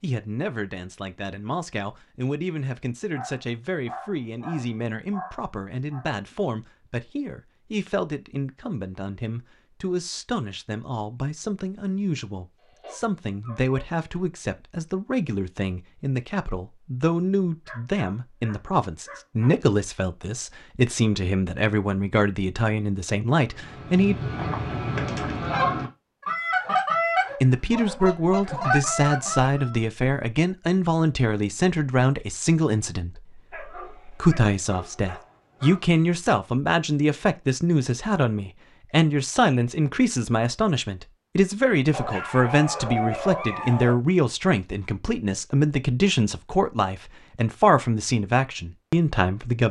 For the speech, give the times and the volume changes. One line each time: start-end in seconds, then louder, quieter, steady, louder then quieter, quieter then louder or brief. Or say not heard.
0.0-24.1 louder
27.4-49.6 steady.